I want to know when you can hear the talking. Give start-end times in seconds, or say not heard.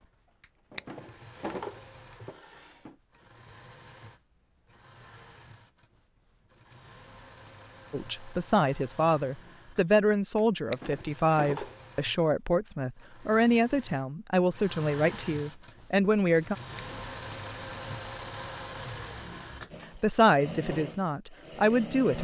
7.9-16.6, 19.9-22.1.